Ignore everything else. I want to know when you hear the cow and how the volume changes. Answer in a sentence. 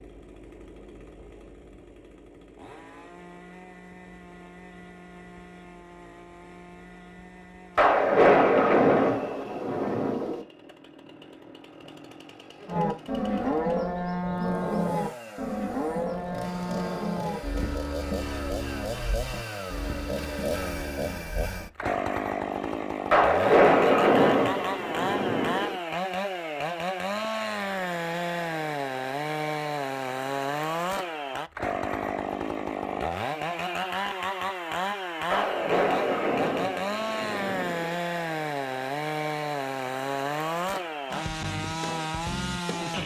The cow can be heard from 12.7 to 21.7 s, getting quieter.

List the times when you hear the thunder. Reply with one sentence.
You can hear the thunder from 7.8 to 10.4 s, from 23.1 to 25.8 s and from 35.3 to 38.0 s.